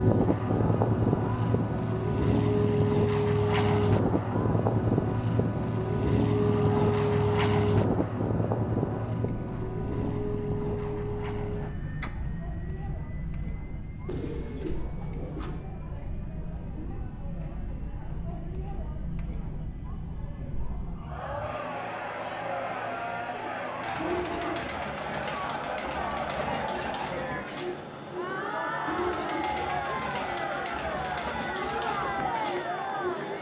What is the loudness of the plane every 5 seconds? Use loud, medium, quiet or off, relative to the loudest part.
loud, loud, medium, quiet, quiet, quiet, quiet.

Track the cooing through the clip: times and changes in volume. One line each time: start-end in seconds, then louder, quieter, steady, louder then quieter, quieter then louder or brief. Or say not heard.
14.1-15.5 brief
23.4-33.3 steady.